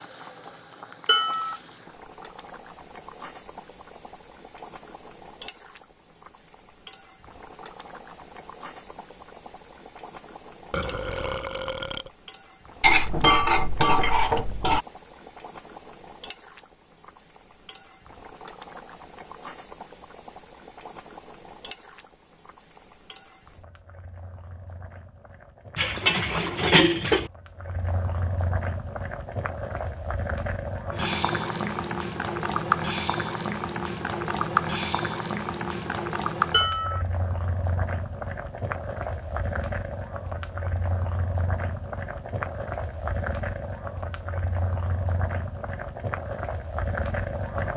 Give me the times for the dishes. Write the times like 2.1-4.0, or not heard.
1.1-1.6, 12.8-14.8, 25.8-27.3, 36.5-37.0.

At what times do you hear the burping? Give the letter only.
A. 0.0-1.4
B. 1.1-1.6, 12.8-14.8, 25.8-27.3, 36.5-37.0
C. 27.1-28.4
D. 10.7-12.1
D.